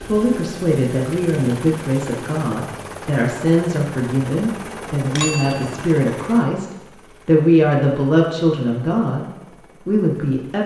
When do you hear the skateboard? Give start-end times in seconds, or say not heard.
not heard.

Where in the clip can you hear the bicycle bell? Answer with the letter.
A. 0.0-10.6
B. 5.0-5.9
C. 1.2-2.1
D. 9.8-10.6
B.